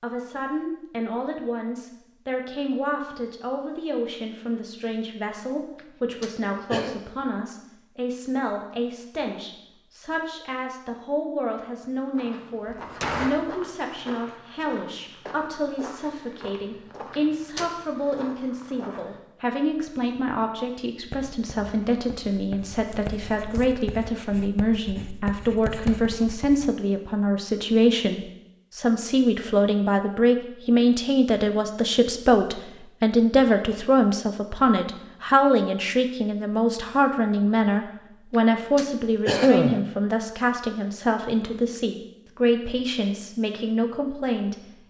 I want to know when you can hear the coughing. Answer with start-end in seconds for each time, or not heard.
5.8-7.0, 17.1-17.7, 38.8-39.8.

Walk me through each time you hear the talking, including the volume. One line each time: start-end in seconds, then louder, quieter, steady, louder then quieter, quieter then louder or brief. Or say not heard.
0.0-44.5 louder.